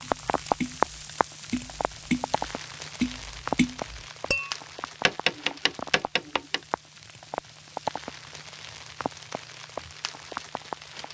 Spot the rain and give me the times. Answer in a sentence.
You can hear the rain from 0.0 to 11.0 s.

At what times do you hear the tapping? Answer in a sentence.
You can hear the tapping from 0.0 to 6.6 s.